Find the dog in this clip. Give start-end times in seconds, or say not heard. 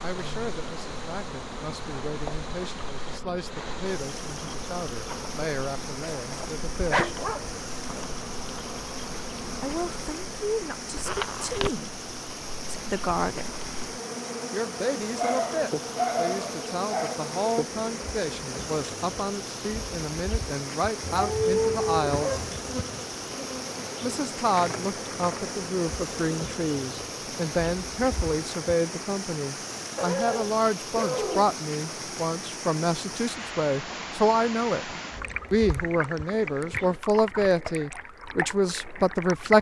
6.3-7.6, 15.2-17.1, 21.0-22.6, 29.9-31.6.